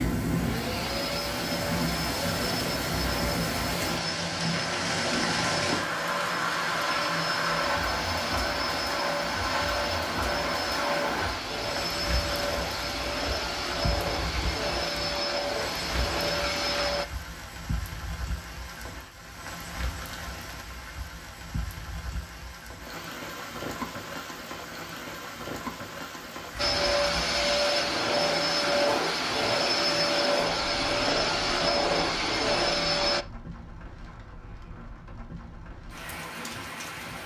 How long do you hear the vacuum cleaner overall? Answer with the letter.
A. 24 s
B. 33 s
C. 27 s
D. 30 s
A.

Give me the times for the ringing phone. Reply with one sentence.
The ringing phone can't be heard in this clip.